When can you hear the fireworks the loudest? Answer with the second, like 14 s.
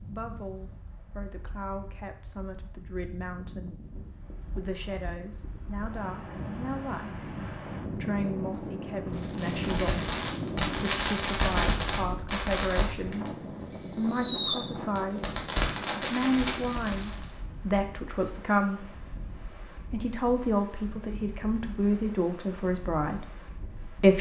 14 s.